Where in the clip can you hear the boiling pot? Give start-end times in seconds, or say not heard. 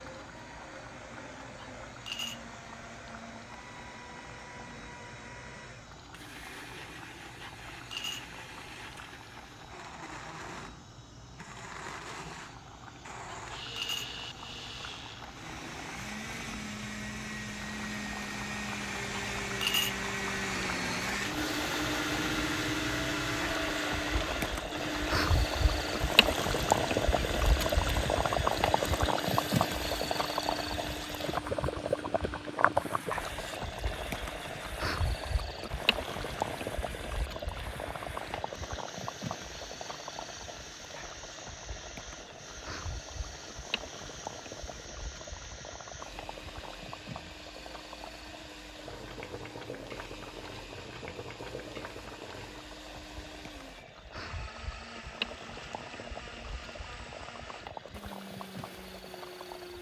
0.0-59.7.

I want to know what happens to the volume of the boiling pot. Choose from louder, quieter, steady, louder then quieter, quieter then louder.
louder then quieter.